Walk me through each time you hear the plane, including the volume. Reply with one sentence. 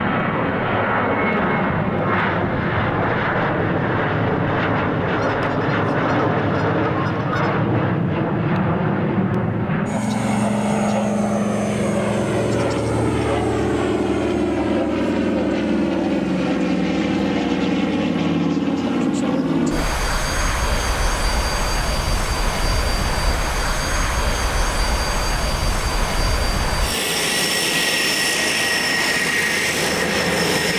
The plane can be heard from 0.0 to 30.7 s, at a steady volume.